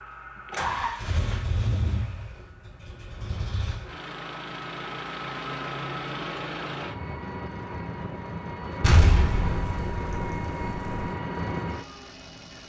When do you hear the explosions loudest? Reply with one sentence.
The volume of the explosions peaks at 9 seconds.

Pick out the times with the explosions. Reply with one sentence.
You can hear the explosions from 8.8 to 11.1 s.